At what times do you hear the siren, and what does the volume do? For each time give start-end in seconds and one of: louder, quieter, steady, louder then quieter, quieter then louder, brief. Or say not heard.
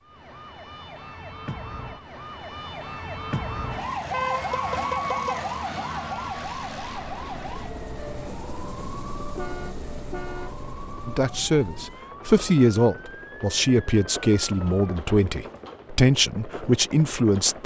0.0-15.0 louder then quieter.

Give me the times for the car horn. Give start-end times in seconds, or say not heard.
4.1-5.3, 9.3-10.6.